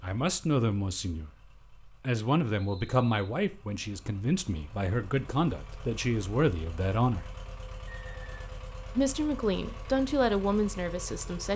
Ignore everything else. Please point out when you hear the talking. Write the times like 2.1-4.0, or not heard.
0.0-1.3, 2.0-7.2, 8.9-11.5.